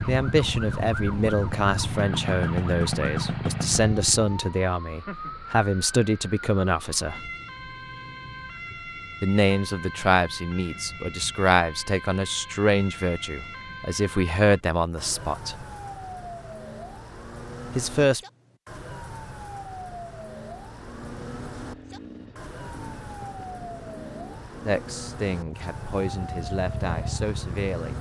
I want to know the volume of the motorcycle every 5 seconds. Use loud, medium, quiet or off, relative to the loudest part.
loud, off, off, off, quiet, medium.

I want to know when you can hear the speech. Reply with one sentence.
You can hear the speech from 0.1 to 7.3 s, from 9.2 to 15.7 s, from 17.8 to 18.2 s and from 24.6 to 27.9 s.